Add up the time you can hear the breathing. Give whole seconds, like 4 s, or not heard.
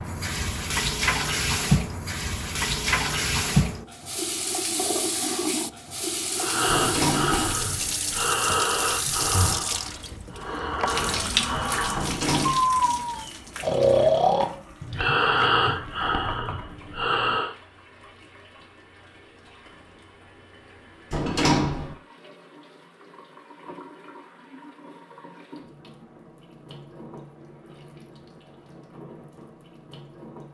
11 s.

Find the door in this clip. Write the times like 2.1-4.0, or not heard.
6.7-7.5, 11.9-12.7, 21.1-21.9.